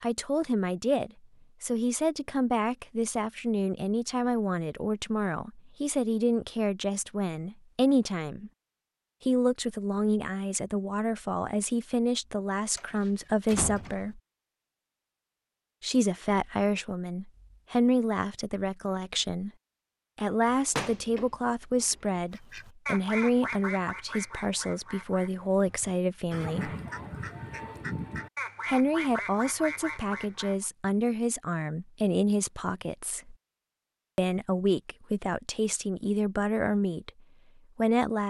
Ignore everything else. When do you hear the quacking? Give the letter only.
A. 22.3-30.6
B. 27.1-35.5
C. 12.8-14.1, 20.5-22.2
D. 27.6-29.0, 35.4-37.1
A.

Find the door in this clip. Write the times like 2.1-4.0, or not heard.
12.8-14.1, 20.5-22.2.